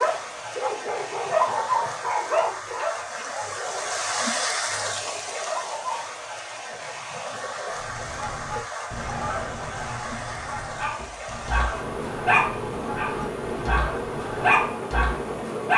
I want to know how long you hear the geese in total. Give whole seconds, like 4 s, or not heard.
7 s.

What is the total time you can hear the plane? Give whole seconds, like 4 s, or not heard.
not heard.